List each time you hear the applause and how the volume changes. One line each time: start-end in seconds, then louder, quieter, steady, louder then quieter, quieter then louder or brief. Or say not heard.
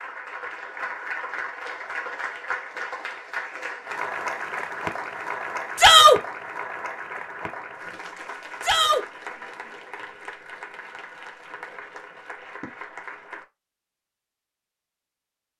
0.0-13.4 quieter.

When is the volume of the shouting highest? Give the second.
6 s.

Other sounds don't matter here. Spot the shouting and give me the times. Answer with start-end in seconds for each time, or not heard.
5.8-6.2, 8.6-9.1.